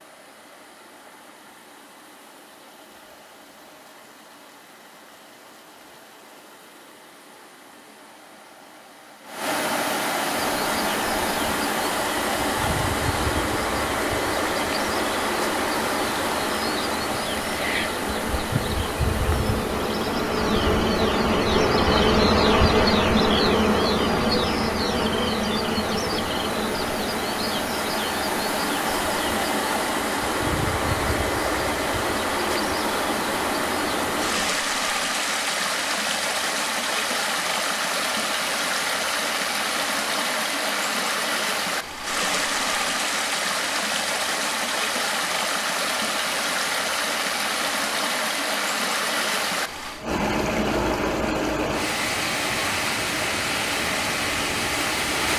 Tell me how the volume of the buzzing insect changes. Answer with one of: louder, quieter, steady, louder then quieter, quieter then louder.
louder then quieter.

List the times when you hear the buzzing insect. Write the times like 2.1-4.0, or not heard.
10.3-34.5.